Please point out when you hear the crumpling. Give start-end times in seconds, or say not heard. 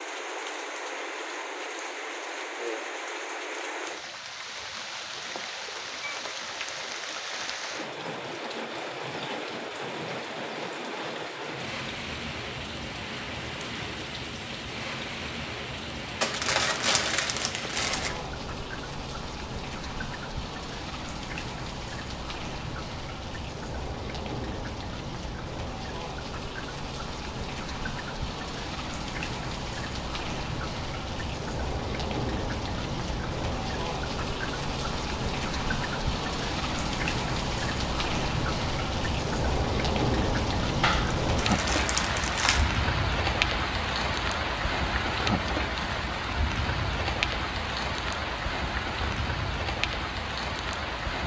16.2-18.1, 40.8-42.6.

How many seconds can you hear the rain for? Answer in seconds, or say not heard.
51 s.